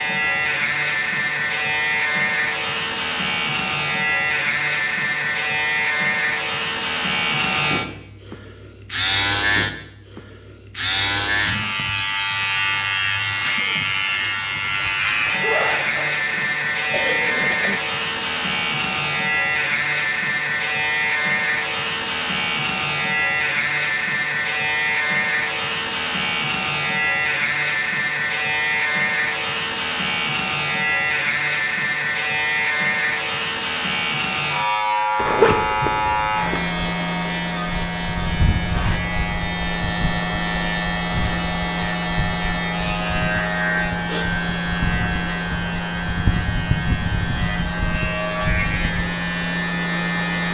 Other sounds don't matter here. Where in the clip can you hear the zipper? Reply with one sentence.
The zipper can be heard from 14.8 to 16.2 s and from 35.1 to 36.6 s.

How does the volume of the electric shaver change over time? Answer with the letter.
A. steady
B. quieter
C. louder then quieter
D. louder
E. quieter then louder
A.